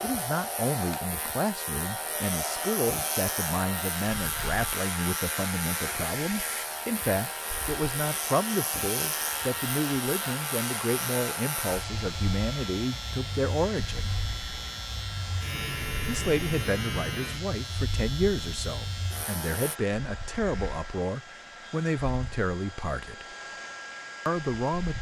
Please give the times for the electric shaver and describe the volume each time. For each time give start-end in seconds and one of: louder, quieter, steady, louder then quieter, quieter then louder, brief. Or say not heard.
0.0-19.8 steady.